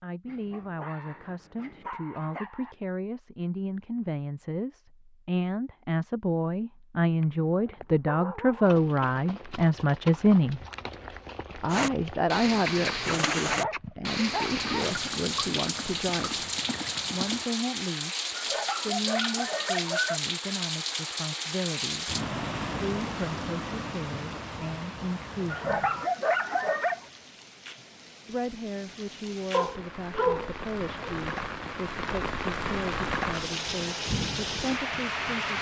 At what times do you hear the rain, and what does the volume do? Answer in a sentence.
You can hear the rain from 11.7 to 35.5 s, getting quieter then louder.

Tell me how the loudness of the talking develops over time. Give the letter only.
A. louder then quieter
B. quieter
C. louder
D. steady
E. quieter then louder
A.